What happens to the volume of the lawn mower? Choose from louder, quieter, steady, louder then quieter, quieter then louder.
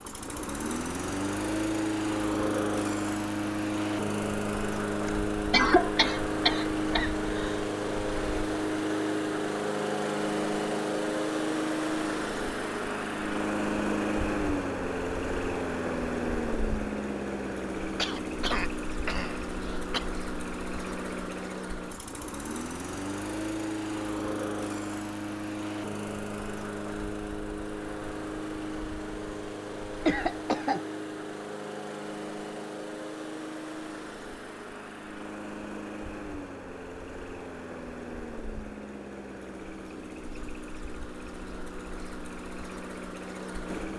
quieter.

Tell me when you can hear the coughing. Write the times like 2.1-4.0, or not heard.
5.0-7.6, 17.9-20.1, 30.1-30.9.